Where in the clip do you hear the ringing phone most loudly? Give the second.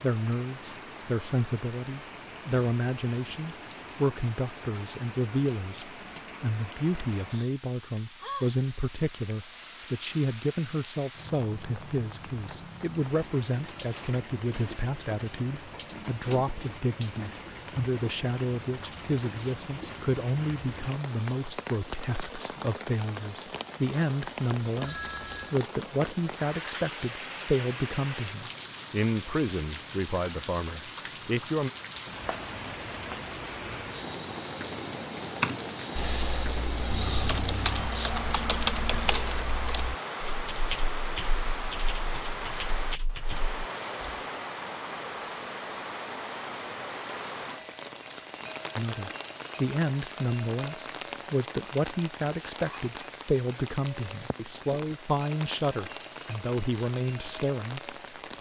25 s.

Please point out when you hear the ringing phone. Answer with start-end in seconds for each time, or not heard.
24.8-25.6, 36.9-39.3.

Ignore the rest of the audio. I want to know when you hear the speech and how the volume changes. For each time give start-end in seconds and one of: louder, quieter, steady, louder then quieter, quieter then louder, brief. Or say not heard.
0.0-31.7 steady
48.8-58.0 steady.